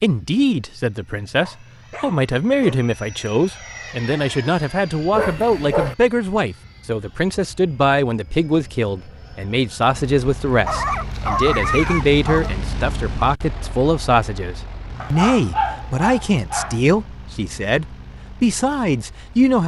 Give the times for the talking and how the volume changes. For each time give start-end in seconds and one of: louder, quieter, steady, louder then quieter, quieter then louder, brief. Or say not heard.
0.0-19.6 steady.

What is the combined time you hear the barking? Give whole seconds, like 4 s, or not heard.
6 s.